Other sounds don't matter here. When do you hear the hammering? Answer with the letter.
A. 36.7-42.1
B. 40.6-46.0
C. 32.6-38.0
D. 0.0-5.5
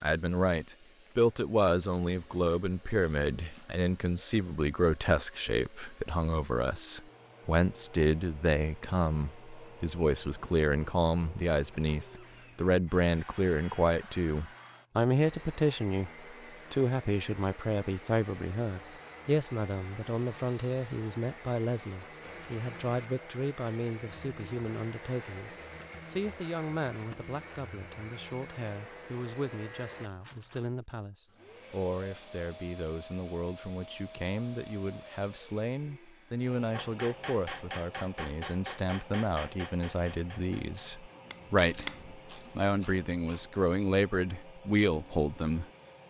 A.